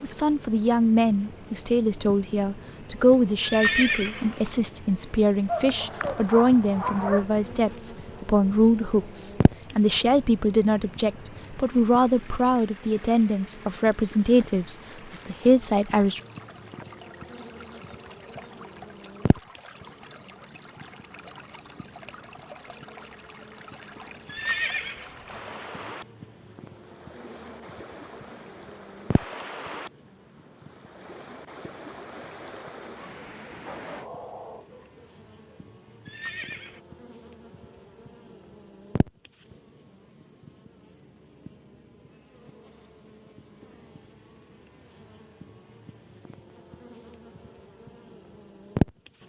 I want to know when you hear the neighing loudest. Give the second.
4 s.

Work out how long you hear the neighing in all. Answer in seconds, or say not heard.
3 s.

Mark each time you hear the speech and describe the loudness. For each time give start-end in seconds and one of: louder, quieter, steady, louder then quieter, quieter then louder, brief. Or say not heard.
0.0-16.2 steady.